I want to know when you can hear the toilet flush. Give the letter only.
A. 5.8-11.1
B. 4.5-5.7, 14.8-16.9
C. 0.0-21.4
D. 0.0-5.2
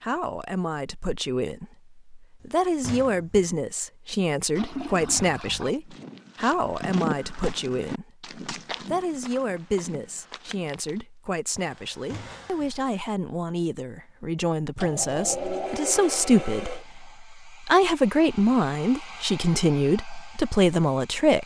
B.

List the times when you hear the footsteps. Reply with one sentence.
The footsteps can be heard from 5.8 to 11.1 s.